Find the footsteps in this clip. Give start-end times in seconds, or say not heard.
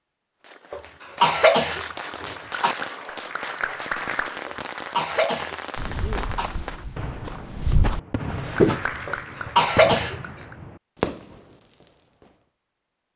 5.8-8.8.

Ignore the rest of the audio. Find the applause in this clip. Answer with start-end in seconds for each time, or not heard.
2.5-4.5, 8.3-10.6.